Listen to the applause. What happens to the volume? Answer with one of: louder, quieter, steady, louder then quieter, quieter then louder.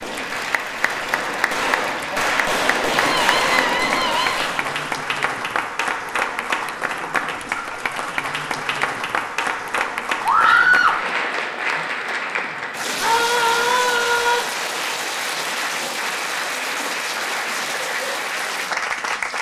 steady.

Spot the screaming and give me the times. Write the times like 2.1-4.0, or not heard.
3.0-4.5, 10.2-10.9, 13.0-14.4.